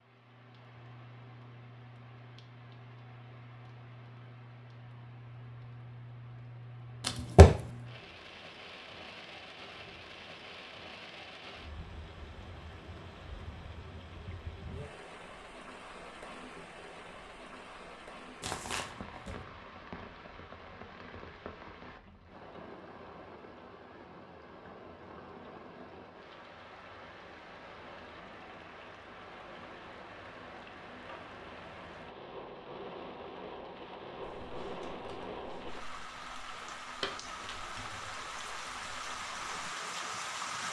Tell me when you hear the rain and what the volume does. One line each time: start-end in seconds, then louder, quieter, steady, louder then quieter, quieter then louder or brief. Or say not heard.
0.0-40.6 louder.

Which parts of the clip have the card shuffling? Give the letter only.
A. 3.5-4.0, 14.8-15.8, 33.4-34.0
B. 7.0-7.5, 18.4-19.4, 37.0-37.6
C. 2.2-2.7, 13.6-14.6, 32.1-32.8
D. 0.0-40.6
B.